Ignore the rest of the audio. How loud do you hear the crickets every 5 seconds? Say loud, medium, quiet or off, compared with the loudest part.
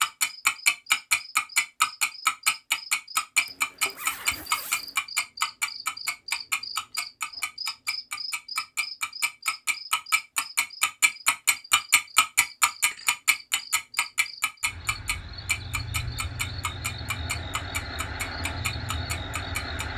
medium, loud, medium, loud.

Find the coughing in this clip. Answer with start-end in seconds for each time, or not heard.
not heard.